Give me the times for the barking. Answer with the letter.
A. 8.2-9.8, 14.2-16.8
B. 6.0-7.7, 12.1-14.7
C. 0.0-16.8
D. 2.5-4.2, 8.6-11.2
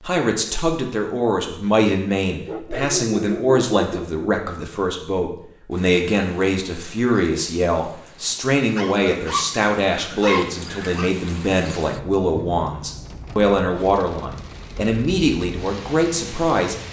D.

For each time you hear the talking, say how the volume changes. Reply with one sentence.
The talking can be heard from 0.0 to 16.8 s, at a steady volume.